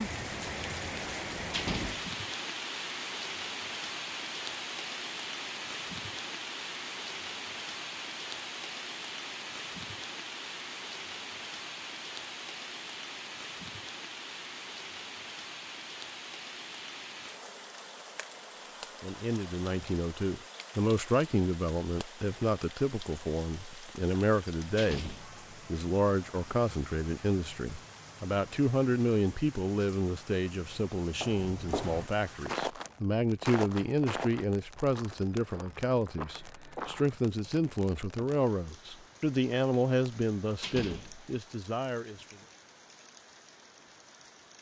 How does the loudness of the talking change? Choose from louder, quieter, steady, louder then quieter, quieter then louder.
steady.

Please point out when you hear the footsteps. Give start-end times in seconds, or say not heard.
31.1-37.2.